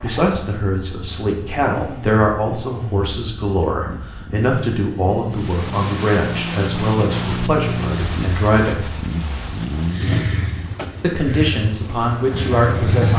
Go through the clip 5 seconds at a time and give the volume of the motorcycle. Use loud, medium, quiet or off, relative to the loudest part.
medium, loud, loud.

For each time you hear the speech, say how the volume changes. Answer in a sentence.
The speech can be heard from 0.0 to 8.9 s, at a steady volume; and briefly from 11.0 to 13.1 s.